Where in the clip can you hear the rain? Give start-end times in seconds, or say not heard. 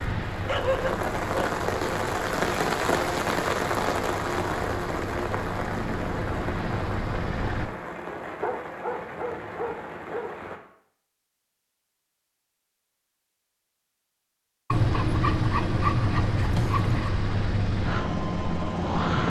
0.0-10.6.